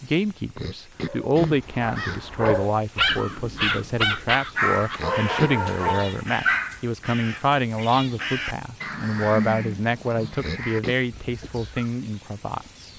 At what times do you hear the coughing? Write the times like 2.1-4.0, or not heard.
0.6-2.5, 5.0-5.5, 10.4-10.9.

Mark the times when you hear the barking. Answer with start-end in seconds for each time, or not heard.
1.1-6.8.